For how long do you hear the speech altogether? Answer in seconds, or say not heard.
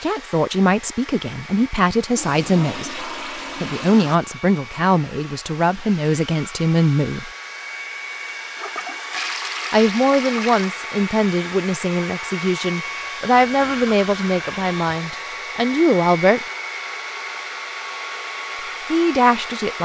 15 s.